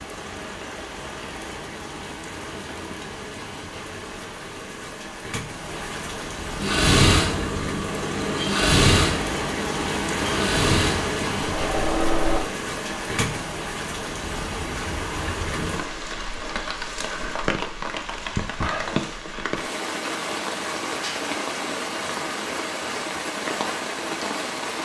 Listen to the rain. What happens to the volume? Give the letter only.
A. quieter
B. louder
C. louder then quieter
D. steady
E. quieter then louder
B.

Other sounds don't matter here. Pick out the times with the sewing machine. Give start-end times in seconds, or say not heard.
6.6-12.4.